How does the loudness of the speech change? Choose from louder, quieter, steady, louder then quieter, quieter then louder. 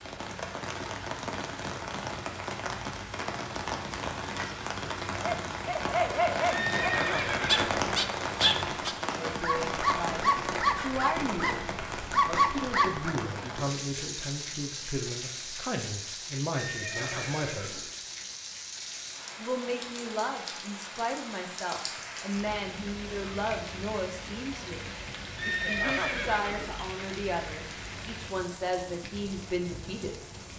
steady.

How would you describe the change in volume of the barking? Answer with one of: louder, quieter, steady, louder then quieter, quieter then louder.
steady.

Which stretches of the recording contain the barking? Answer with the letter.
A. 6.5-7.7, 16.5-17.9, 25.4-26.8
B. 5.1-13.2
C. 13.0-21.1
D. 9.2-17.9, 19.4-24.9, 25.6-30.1
B.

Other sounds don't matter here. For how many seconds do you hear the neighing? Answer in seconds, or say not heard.
4 s.